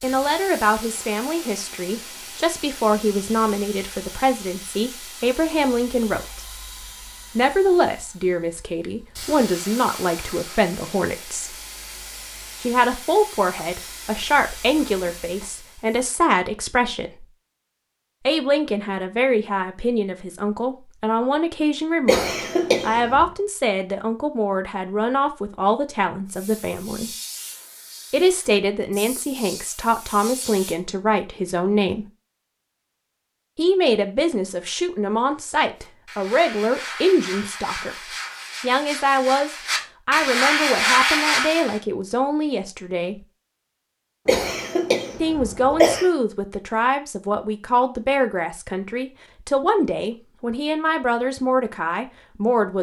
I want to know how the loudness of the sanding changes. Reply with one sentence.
The volume of the sanding goes up.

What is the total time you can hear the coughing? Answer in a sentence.
You can hear the coughing for 3 seconds altogether.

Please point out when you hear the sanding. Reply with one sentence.
You can hear the sanding from 35.8 to 41.8 s.